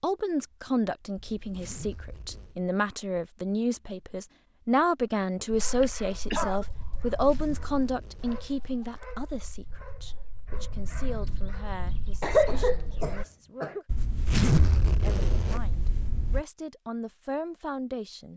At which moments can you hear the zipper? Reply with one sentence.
The zipper can be heard from 1.1 to 2.5 s, from 7.1 to 8.7 s and from 13.8 to 16.4 s.